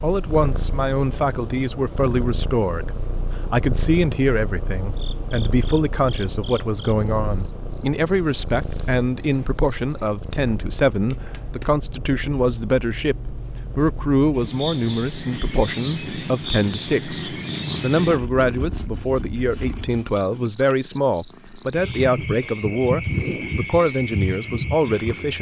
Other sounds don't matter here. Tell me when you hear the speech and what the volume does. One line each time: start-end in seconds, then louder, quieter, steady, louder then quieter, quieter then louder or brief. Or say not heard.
0.0-25.3 steady.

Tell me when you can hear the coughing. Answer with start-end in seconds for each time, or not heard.
not heard.